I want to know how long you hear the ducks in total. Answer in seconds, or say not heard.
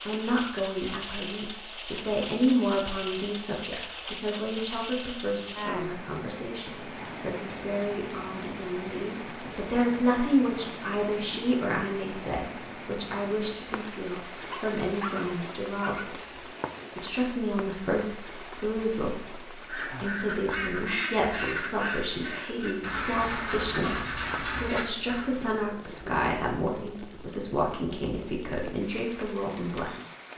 6 s.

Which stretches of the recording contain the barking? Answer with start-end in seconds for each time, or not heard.
14.5-16.1.